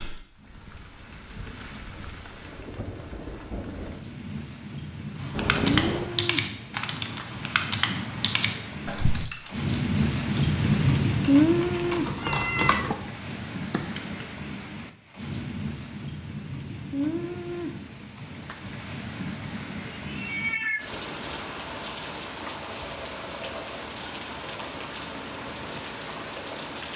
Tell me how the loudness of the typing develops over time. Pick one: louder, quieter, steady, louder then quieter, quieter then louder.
quieter then louder.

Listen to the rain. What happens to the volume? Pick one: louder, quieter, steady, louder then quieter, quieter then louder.
louder then quieter.